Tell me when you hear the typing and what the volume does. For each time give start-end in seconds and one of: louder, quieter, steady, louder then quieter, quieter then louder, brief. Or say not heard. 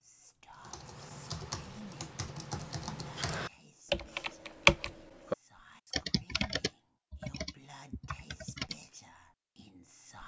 0.6-8.8 louder then quieter.